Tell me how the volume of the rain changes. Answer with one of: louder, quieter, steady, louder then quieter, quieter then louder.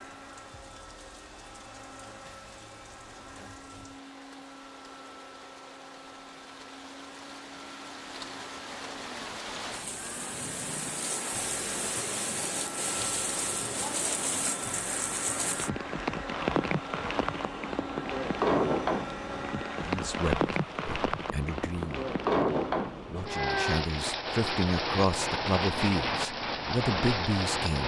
louder.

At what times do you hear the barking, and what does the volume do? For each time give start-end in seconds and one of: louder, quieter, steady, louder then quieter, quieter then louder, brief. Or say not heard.
not heard.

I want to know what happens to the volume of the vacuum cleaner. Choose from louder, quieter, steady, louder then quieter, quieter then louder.
louder.